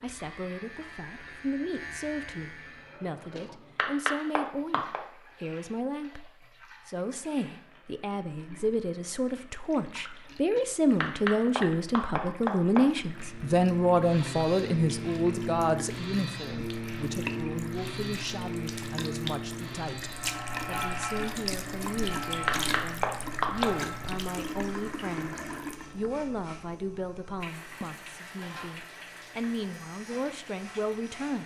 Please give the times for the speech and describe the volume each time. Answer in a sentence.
The speech can be heard from 0.0 to 31.4 s, getting louder then quieter.